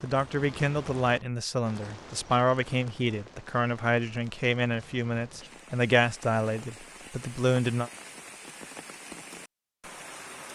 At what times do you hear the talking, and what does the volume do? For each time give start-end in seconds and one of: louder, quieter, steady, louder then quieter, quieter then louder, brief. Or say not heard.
0.0-7.9 steady.